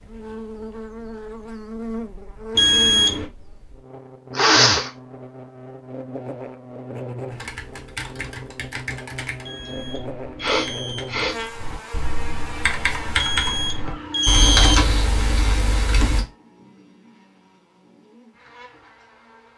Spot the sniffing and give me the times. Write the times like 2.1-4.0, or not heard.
4.3-4.9, 9.6-11.4, 13.8-15.1.